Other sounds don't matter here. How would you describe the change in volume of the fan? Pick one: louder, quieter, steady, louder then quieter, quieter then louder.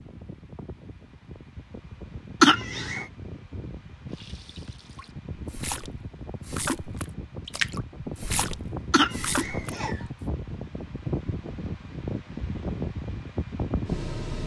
louder.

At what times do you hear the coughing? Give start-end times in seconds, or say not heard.
2.4-3.0, 8.9-10.0.